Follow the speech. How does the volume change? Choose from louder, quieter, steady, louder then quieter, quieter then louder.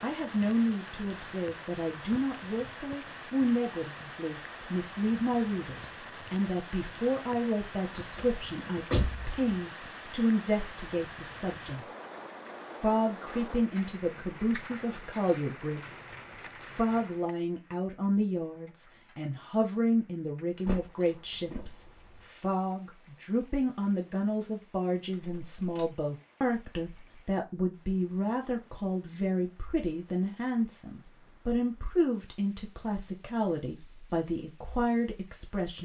steady.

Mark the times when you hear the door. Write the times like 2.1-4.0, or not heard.
8.2-9.4, 20.6-22.2, 25.1-25.9.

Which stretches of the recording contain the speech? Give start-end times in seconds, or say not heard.
0.0-11.8, 12.8-35.7.